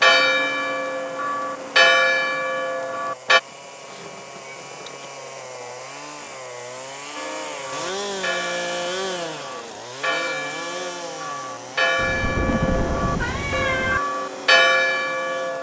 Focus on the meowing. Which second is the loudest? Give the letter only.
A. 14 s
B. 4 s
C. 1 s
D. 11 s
A.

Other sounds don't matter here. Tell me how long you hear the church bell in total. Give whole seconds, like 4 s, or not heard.
12 s.